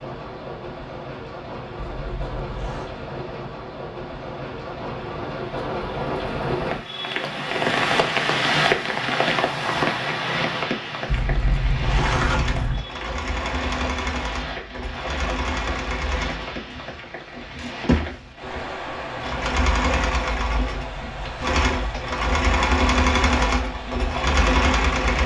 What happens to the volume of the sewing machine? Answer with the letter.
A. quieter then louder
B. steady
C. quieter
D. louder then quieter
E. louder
E.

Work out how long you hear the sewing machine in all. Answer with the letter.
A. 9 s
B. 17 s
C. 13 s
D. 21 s
C.